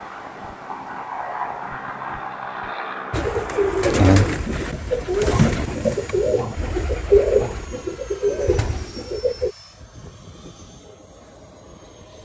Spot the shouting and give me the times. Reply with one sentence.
You can't hear the shouting here.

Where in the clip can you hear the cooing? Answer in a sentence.
You can hear the cooing from 3.1 to 9.6 s.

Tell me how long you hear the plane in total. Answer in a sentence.
The plane can be heard for 12 seconds in total.